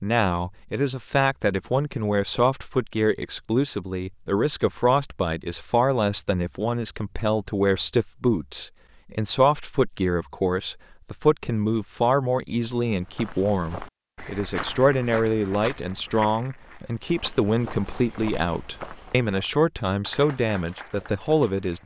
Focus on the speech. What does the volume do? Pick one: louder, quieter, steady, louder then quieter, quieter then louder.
steady.